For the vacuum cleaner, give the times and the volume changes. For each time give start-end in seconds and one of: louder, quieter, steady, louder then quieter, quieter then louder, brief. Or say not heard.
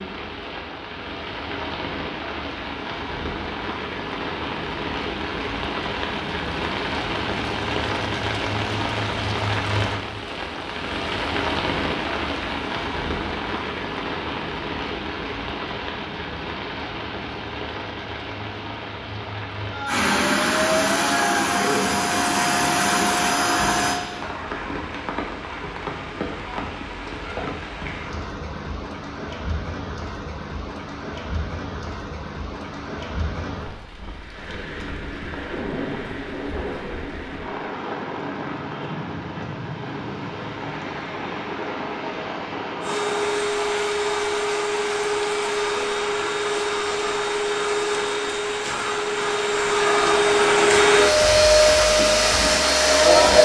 19.9-24.0 steady
42.8-53.4 louder.